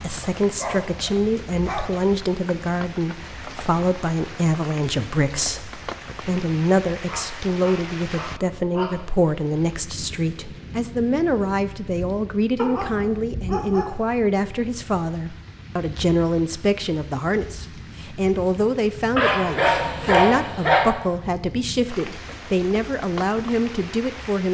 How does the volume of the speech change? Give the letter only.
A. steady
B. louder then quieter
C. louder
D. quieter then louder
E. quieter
A.